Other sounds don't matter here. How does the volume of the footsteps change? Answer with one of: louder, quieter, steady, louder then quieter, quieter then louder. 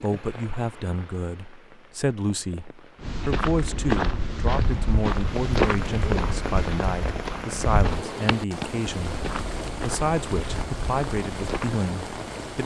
quieter.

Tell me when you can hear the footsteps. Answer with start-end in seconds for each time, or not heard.
3.0-11.8.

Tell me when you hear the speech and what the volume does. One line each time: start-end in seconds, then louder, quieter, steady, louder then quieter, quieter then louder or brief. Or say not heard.
0.0-12.6 steady.